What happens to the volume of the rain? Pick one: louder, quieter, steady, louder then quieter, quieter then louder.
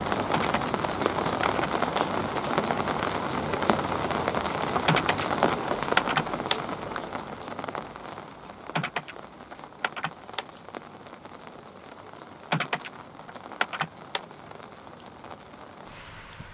quieter.